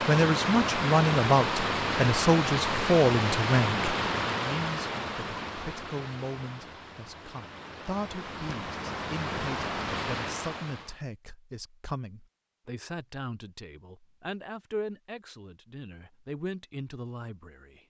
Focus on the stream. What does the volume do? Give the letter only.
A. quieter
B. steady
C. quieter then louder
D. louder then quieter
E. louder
C.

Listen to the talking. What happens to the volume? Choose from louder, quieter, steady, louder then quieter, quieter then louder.
quieter.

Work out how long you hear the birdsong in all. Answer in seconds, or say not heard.
not heard.